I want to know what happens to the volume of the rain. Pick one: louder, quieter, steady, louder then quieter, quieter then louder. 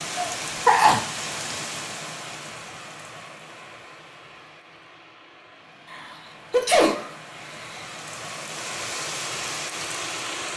quieter then louder.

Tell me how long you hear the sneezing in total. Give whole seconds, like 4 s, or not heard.
3 s.